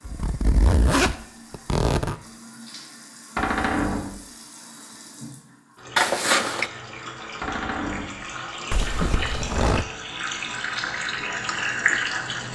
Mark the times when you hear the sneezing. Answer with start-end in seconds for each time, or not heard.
not heard.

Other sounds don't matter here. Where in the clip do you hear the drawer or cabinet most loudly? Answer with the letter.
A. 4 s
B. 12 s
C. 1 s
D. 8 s
A.